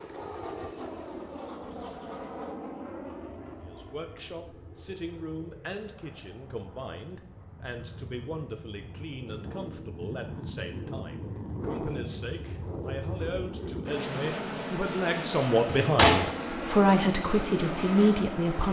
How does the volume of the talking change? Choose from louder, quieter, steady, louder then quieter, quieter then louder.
louder.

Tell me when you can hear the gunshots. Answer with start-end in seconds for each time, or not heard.
15.7-16.3.